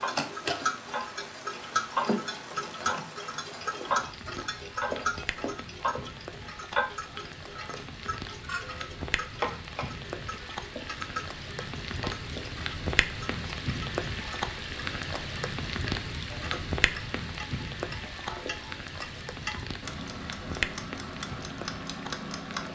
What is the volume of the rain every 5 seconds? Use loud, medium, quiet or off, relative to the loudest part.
medium, medium, loud, loud, loud.